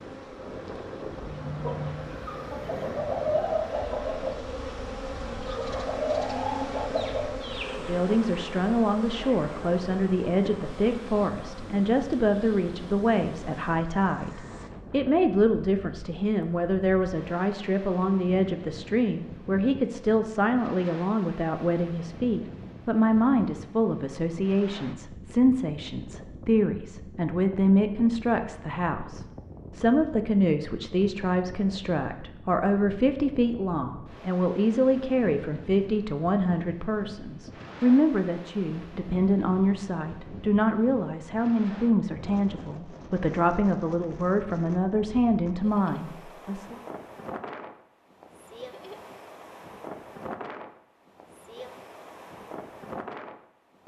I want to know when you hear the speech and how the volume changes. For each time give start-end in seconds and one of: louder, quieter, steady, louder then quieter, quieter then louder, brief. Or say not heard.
7.8-46.8 steady.